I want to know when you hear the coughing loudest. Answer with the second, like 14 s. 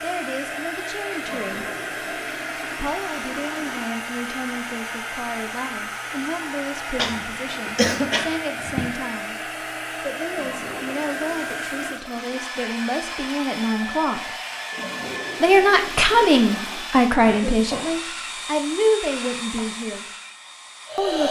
8 s.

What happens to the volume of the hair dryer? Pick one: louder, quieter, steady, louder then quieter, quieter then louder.
steady.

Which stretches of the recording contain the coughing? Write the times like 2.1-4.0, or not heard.
7.0-8.9, 17.2-18.0.